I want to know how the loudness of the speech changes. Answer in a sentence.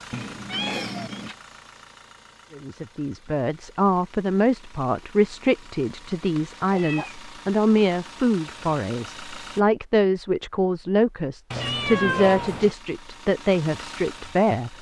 The volume of the speech stays about the same.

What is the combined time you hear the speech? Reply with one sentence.
You can hear the speech for 12 seconds altogether.